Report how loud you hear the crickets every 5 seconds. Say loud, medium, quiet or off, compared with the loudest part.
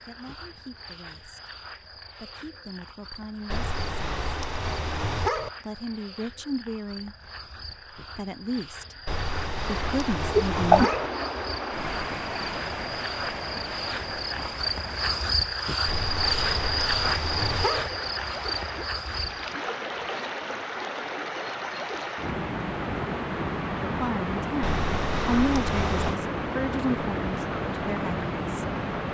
quiet, quiet, medium, loud, off, off.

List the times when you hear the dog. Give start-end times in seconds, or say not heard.
3.5-5.5, 9.1-11.1, 15.8-17.9, 24.6-26.2.